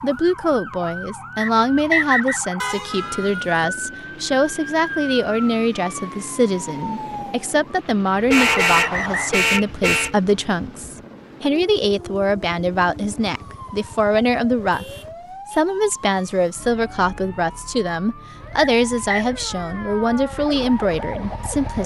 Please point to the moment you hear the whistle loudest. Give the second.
2 s.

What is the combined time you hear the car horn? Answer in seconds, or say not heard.
4 s.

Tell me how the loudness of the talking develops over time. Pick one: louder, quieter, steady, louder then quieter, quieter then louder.
steady.